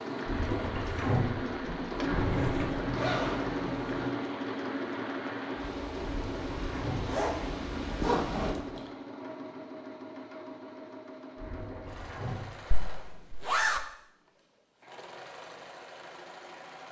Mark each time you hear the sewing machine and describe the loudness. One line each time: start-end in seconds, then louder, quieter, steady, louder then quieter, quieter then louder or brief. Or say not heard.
0.0-16.8 quieter.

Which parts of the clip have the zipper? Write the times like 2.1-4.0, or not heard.
2.0-4.1, 7.0-8.8, 12.7-13.8.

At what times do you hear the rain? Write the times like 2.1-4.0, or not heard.
0.0-8.6.